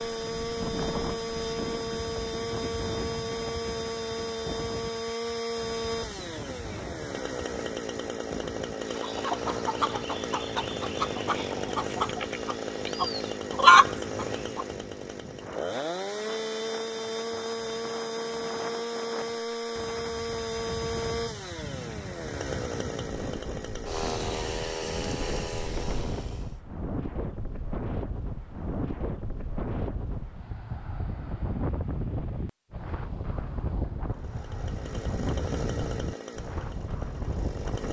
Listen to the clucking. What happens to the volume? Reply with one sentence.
The volume of the clucking goes up.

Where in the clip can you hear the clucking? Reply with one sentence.
You can hear the clucking from 8.9 to 14.7 s.